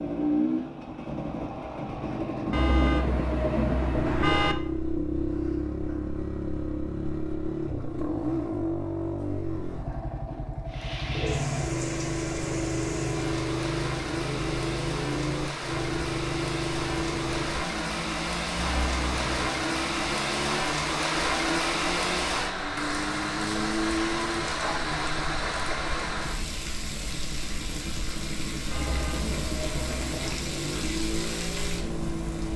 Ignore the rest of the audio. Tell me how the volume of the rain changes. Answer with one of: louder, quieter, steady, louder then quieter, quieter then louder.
louder then quieter.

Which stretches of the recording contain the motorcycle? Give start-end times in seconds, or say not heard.
0.0-32.5.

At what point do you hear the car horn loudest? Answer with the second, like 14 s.
4 s.